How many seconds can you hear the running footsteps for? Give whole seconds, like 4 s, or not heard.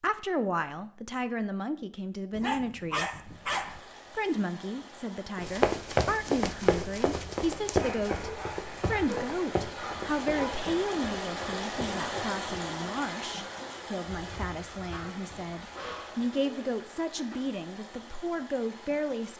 7 s.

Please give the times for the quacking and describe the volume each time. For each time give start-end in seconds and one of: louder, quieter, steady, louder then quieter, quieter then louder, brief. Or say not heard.
not heard.